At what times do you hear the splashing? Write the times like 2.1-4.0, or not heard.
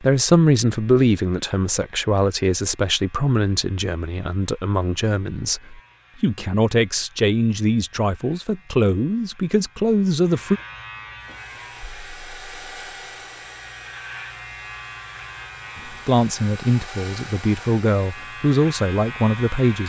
not heard.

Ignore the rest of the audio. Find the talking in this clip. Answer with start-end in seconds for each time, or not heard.
0.0-10.6, 15.8-19.8.